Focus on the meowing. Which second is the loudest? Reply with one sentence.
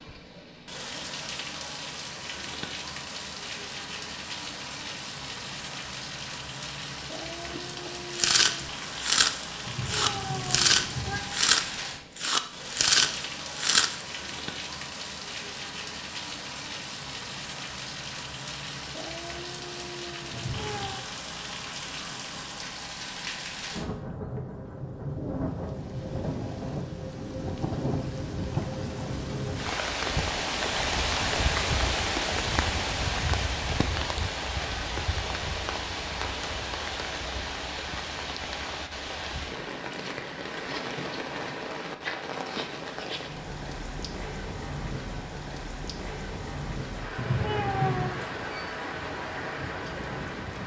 The loudest moment of the meowing is at 48 seconds.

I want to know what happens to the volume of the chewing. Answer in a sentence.
The volume of the chewing stays about the same.